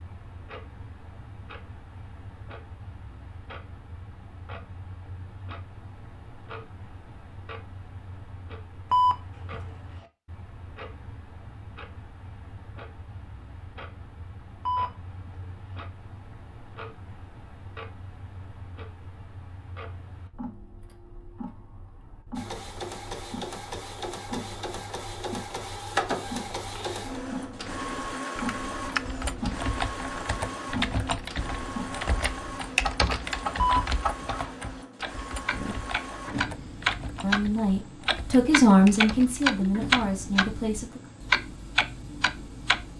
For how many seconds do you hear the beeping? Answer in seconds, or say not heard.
2 s.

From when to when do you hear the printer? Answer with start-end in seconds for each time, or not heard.
22.4-42.9.